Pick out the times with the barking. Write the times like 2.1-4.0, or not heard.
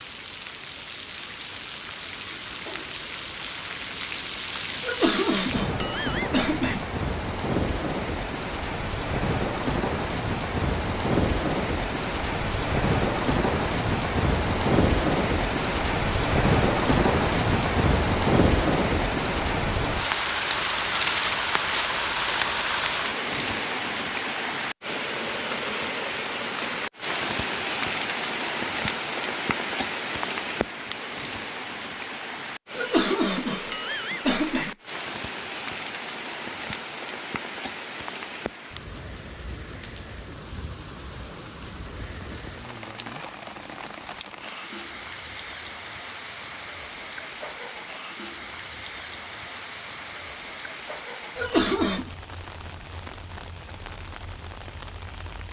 not heard.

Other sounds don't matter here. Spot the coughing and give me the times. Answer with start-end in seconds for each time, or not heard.
4.8-6.8, 32.8-34.8, 51.4-52.1.